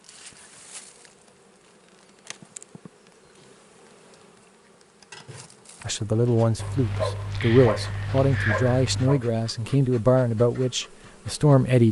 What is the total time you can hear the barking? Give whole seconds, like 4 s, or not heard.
3 s.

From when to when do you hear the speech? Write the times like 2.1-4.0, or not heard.
5.8-11.8.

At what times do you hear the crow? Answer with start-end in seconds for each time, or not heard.
not heard.